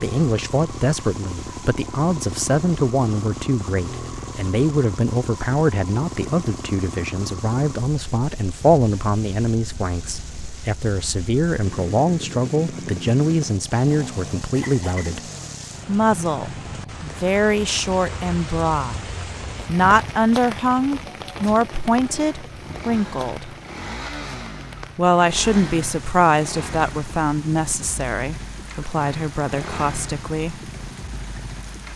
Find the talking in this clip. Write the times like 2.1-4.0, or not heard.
0.0-15.2, 15.8-19.0, 19.6-23.6, 24.9-30.6.